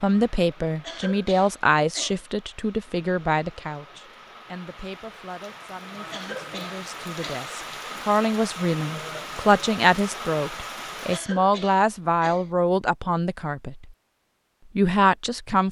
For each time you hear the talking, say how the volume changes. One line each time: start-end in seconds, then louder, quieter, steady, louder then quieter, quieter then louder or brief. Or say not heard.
0.0-13.8 quieter then louder
14.8-15.6 brief.